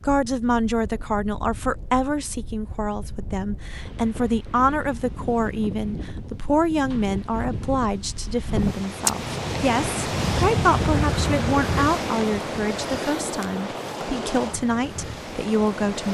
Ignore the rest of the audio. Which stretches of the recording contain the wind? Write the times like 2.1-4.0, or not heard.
0.0-16.0.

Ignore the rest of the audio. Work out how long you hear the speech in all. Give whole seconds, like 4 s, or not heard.
16 s.